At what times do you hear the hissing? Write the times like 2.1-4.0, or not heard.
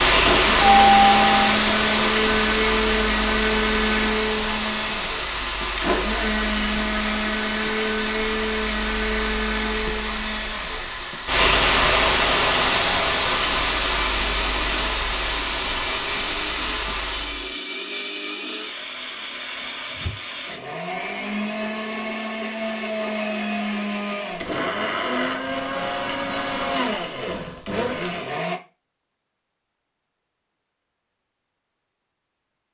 0.0-17.5.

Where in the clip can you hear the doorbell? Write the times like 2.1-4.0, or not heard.
0.5-1.5.